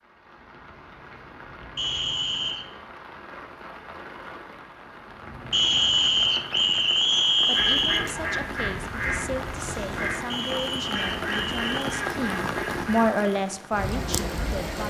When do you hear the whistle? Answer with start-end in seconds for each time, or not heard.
1.8-2.6, 5.5-8.0, 10.2-12.0.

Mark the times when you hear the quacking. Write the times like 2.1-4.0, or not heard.
7.5-13.1.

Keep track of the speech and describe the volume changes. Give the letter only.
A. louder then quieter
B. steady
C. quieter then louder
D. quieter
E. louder
E.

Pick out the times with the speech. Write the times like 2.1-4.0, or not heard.
7.5-14.8.